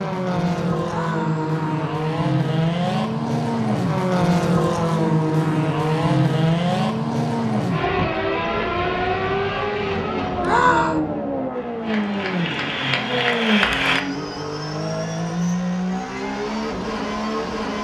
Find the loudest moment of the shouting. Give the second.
11 s.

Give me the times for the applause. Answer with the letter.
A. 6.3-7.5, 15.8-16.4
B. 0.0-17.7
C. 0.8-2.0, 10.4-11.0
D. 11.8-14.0
D.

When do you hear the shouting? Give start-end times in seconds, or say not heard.
0.8-2.0, 10.4-11.0.